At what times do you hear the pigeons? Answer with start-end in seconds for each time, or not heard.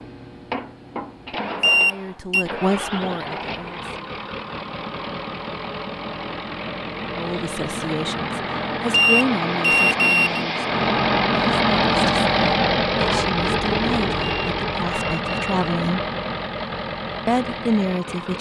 not heard.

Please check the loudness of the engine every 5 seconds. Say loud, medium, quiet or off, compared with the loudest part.
medium, medium, loud, medium.